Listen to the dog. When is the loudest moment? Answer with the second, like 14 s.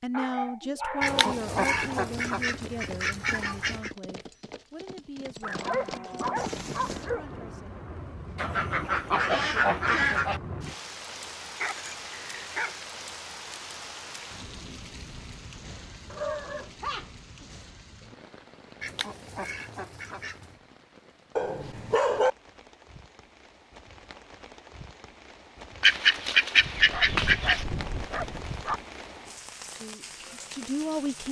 22 s.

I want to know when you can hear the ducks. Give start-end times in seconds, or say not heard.
1.0-3.9, 8.3-10.4, 18.8-20.5, 25.8-27.6.